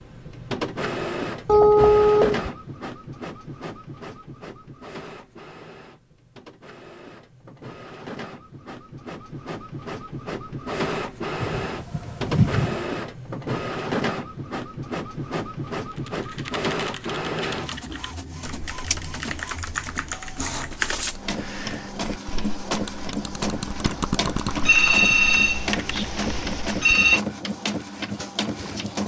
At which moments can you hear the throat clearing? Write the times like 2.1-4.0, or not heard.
not heard.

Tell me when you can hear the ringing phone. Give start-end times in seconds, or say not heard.
1.4-2.5, 11.4-12.8, 24.6-27.2.